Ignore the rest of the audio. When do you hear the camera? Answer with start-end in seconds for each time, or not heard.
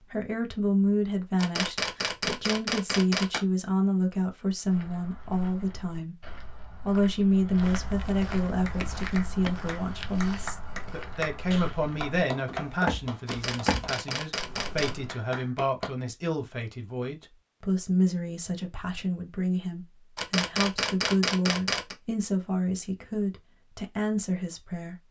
1.4-3.4, 13.2-14.9, 20.1-21.9.